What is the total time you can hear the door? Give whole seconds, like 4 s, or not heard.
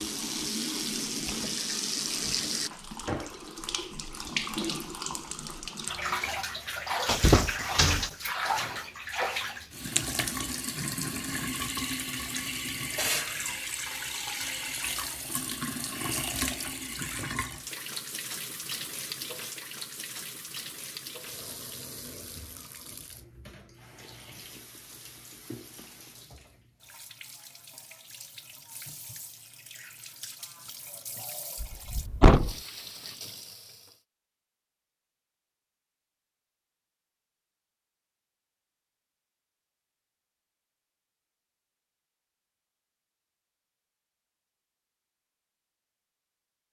2 s.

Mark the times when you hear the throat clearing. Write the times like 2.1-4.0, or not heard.
not heard.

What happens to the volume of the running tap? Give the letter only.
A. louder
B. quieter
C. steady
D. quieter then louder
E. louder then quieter
B.